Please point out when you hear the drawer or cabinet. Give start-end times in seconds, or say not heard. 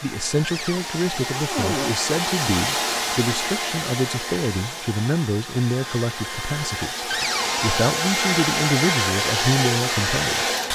0.4-1.9, 7.1-7.7.